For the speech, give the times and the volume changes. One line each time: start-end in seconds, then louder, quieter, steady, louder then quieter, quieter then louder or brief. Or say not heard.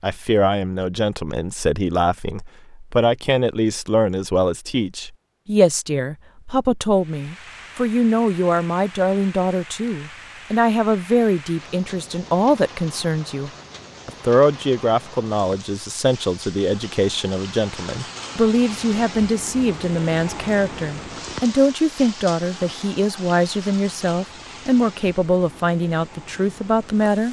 0.0-27.2 steady.